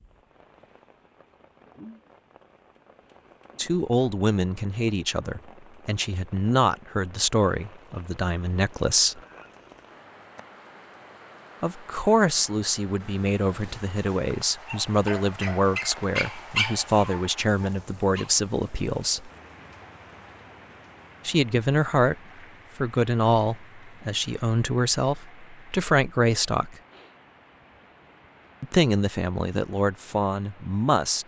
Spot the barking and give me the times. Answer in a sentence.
You can hear the barking from 13.9 to 18.7 s.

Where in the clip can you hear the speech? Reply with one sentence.
The speech can be heard from 3.5 to 9.2 s, from 11.6 to 19.3 s, from 21.2 to 22.1 s, from 22.8 to 26.8 s and from 28.6 to 31.2 s.